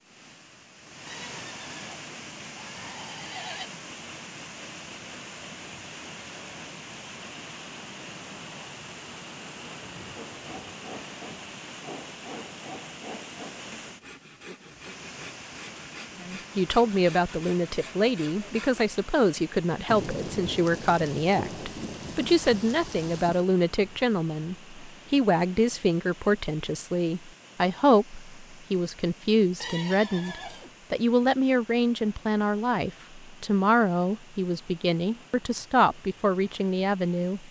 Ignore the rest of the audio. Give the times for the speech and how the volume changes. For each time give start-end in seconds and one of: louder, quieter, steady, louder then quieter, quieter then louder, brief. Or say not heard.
16.2-37.4 steady.